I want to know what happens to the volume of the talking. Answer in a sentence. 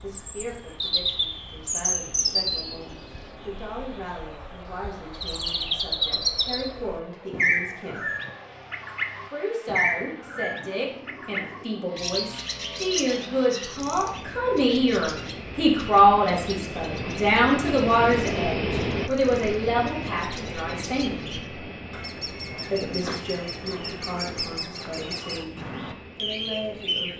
The loudness of the talking goes up, then down.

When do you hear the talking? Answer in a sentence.
You can hear the talking from 0.0 to 8.1 s, from 9.2 to 21.4 s and from 22.7 to 27.1 s.